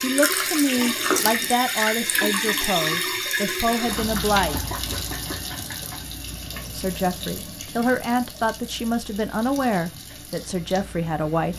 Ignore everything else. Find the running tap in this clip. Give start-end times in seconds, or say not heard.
0.0-11.5.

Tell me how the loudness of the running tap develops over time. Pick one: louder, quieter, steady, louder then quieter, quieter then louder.
quieter.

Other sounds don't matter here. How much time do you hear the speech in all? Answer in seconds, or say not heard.
9 s.